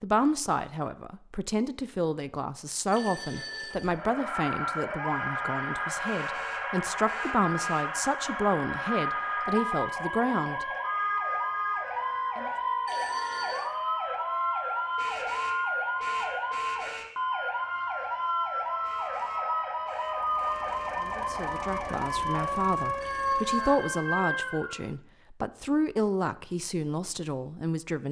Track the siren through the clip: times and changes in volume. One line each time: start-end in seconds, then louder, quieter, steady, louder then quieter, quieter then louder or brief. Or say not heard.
3.8-24.9 steady.